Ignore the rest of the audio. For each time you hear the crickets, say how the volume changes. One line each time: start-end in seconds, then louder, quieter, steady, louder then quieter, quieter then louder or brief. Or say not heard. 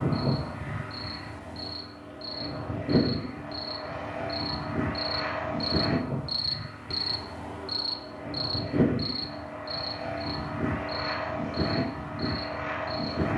0.0-13.3 louder then quieter.